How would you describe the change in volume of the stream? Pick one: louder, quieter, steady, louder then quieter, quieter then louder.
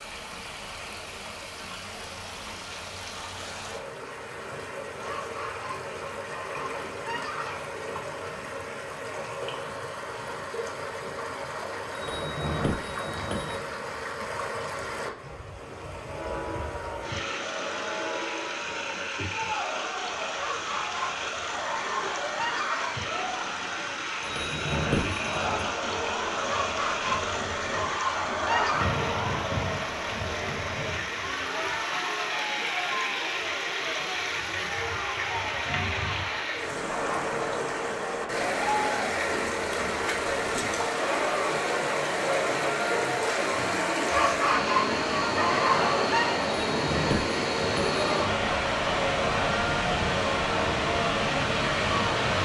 louder.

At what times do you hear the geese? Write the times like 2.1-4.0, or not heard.
5.0-7.7, 20.4-22.9, 26.4-29.0, 44.0-46.3.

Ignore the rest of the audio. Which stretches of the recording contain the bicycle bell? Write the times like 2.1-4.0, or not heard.
11.9-13.6, 24.2-25.7, 46.5-48.3.